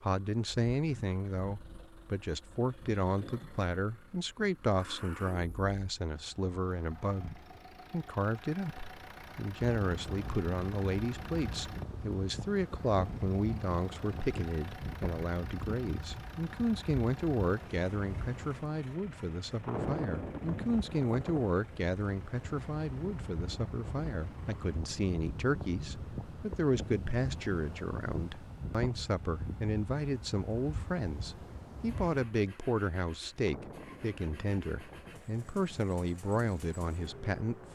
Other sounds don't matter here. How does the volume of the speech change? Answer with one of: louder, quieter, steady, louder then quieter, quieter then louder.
steady.